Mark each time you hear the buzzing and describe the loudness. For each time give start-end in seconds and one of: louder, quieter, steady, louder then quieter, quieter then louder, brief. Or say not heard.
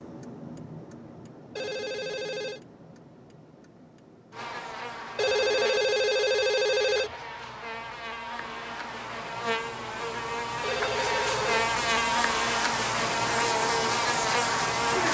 4.3-15.0 louder.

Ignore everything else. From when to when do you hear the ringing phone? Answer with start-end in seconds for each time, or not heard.
1.6-2.6, 5.2-7.2, 10.6-11.6.